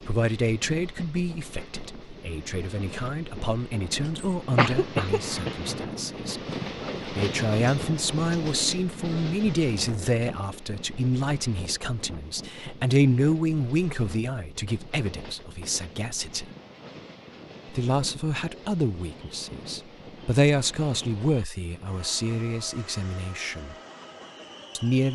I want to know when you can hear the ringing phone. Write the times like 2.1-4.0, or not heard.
not heard.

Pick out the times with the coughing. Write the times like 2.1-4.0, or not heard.
4.0-5.5.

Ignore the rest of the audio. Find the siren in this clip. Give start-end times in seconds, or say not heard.
not heard.